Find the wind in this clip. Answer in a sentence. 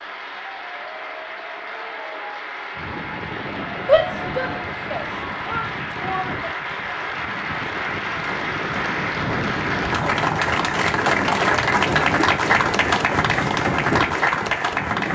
The wind can be heard from 2.8 to 15.1 s.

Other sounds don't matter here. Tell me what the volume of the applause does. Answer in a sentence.
The volume of the applause goes up.